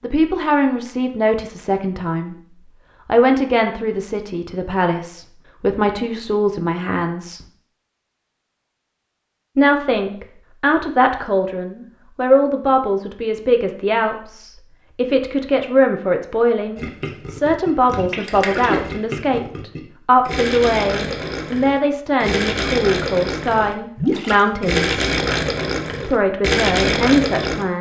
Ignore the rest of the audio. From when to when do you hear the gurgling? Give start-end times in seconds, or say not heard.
16.8-27.6.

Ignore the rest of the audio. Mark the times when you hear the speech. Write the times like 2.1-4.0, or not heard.
0.0-2.4, 3.0-7.4, 9.6-24.9, 26.1-27.7.